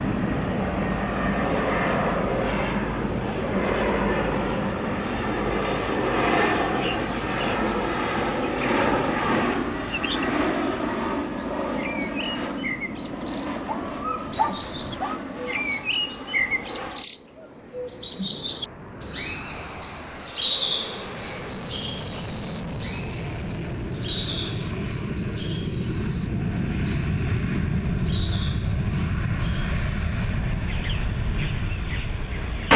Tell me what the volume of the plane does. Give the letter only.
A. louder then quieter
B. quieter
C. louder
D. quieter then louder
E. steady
D.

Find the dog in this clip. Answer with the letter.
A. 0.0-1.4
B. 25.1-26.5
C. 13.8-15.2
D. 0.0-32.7
C.